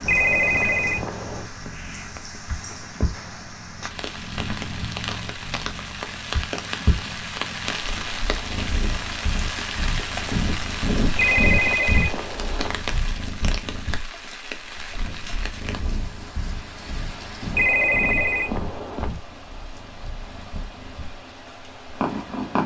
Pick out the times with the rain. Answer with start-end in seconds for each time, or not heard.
0.0-22.6.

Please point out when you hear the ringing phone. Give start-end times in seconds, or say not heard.
0.1-1.4, 11.2-12.7, 17.5-19.1.